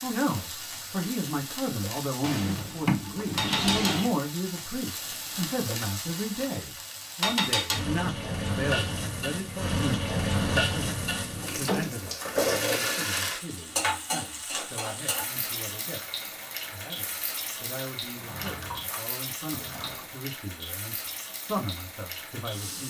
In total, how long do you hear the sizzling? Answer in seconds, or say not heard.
23 s.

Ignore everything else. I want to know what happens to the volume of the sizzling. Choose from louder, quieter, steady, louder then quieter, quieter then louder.
louder then quieter.